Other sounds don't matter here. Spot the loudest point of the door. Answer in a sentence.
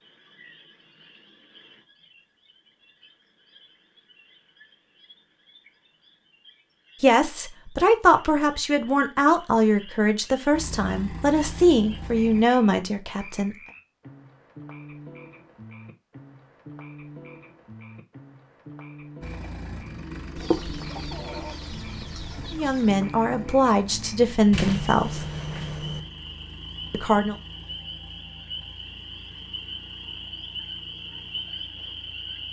The loudest moment of the door is at 25 seconds.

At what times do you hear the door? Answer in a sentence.
You can hear the door from 24.5 to 26.0 s.